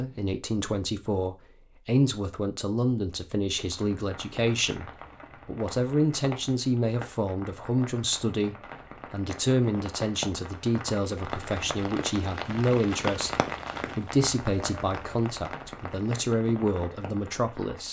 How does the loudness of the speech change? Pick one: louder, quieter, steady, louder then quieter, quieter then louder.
steady.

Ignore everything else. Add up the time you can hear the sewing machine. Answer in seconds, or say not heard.
not heard.